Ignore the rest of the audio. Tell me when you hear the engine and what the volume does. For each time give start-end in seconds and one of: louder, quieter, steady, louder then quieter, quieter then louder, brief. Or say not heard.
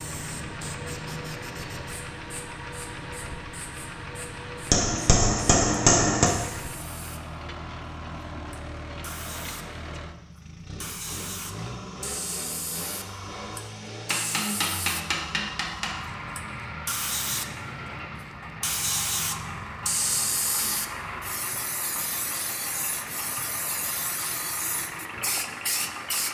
0.0-26.2 steady.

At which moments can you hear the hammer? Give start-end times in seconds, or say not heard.
4.7-6.3, 14.1-15.9.